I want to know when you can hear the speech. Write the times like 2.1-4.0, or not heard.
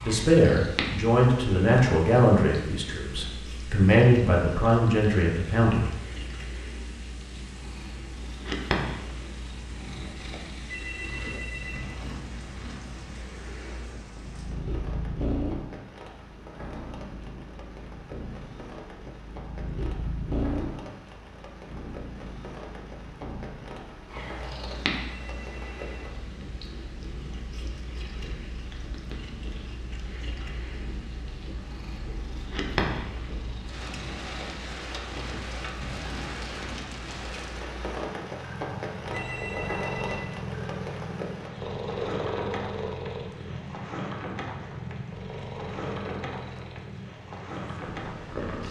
0.0-5.9.